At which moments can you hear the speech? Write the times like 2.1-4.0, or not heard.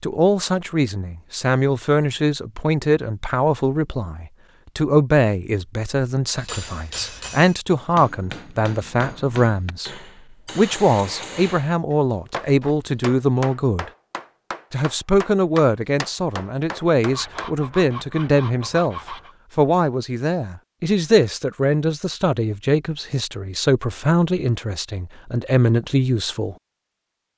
0.0-9.9, 10.6-13.9, 14.7-26.6.